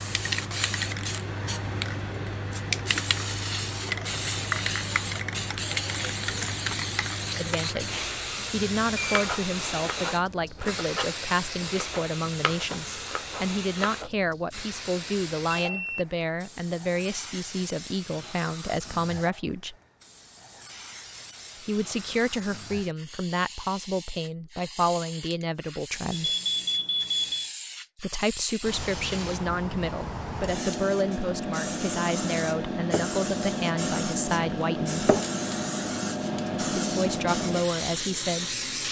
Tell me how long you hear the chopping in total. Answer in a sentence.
You can hear the chopping for 5 seconds altogether.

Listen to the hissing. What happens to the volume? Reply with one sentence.
The volume of the hissing goes down, then up.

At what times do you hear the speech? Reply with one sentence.
The speech can be heard from 7.3 to 19.8 s, from 21.6 to 26.4 s, from 27.9 to 35.1 s and from 36.5 to 38.5 s.